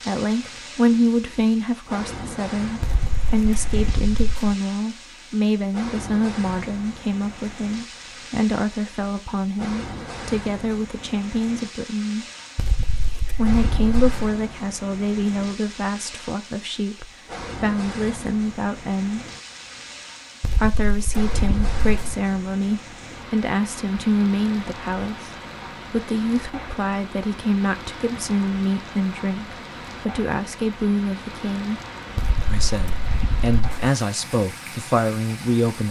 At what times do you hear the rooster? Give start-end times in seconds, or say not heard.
not heard.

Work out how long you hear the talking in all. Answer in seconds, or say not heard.
33 s.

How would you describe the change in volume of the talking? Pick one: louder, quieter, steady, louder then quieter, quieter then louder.
steady.